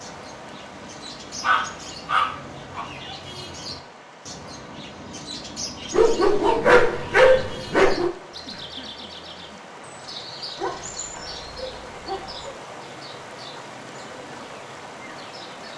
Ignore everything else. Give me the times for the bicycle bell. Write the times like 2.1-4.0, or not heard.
not heard.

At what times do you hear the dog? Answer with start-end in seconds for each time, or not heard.
1.4-2.9, 5.9-8.1, 10.6-12.5.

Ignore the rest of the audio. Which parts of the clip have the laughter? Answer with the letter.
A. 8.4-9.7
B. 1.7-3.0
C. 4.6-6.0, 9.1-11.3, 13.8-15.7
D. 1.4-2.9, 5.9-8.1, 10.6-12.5
A.